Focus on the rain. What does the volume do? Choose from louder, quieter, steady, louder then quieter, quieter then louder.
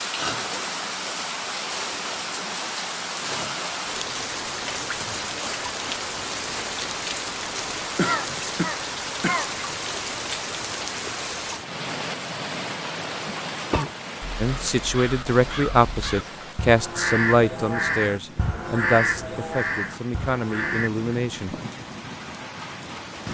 quieter.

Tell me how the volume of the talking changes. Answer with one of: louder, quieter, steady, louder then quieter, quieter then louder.
quieter.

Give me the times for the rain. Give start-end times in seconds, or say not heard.
0.0-23.2.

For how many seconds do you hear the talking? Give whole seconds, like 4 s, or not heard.
7 s.